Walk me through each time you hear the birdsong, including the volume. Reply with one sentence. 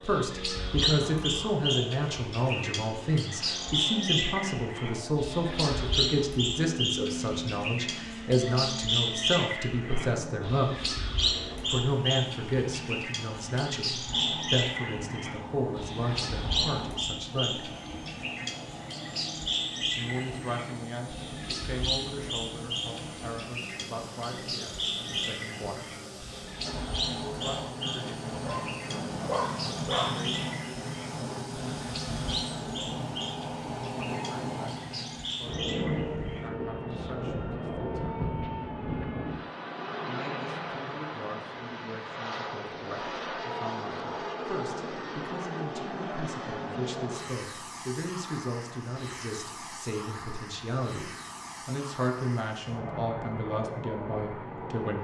You can hear the birdsong from 0.0 to 37.1 s, getting quieter.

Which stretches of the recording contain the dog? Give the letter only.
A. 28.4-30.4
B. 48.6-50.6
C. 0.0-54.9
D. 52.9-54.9
A.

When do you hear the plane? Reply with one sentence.
The plane can be heard from 0.0 to 54.9 s.